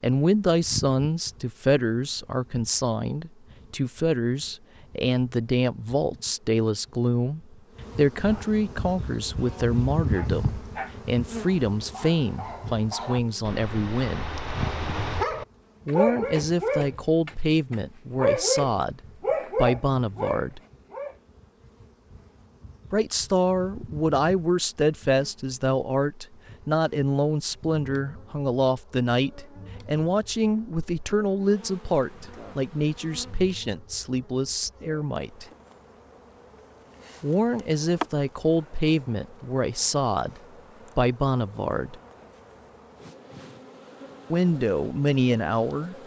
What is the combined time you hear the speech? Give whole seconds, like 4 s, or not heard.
38 s.